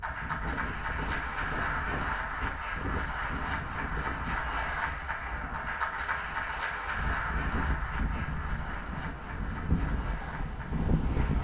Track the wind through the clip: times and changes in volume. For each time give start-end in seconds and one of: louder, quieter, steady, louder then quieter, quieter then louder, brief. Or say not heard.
0.0-11.3 quieter then louder.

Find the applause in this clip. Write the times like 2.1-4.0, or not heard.
0.0-11.3.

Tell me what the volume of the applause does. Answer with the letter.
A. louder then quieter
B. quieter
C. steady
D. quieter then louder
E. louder
B.